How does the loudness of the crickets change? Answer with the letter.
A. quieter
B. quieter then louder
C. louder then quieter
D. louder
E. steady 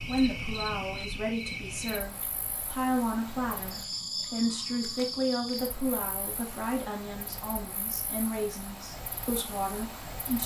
A.